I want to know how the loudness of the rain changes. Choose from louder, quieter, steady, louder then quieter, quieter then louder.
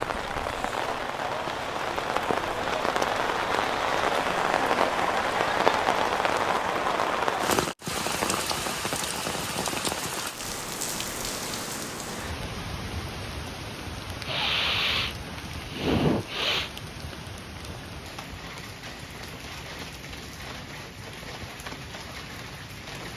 quieter.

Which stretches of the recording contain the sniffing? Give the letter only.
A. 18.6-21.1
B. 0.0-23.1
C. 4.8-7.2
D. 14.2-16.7
D.